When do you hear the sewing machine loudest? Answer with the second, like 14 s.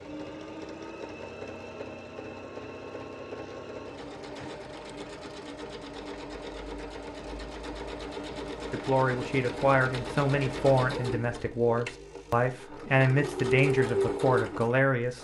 14 s.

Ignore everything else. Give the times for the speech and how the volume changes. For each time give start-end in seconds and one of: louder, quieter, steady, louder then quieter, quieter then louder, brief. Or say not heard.
8.7-15.1 steady.